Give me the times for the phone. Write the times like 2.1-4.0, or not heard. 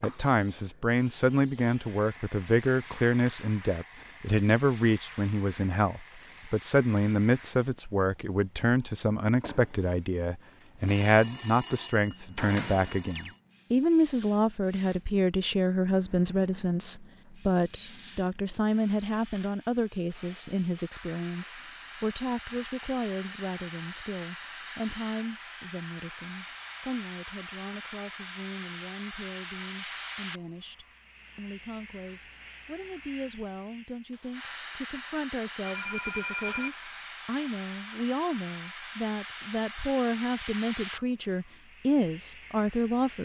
10.8-13.4, 35.6-36.7.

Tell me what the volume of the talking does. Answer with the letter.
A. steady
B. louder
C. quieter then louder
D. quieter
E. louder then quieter
C.